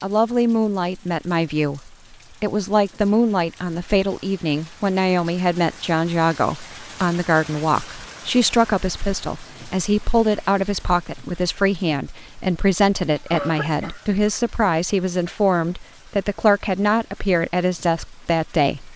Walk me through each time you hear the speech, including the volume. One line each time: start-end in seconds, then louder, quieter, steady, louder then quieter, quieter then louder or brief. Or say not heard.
0.0-18.9 steady.